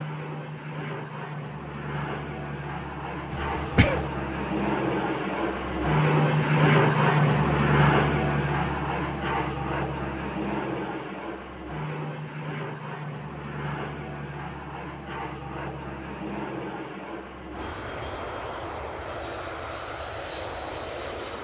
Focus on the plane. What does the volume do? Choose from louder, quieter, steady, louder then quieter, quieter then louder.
louder then quieter.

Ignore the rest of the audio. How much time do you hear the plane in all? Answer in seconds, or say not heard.
21 s.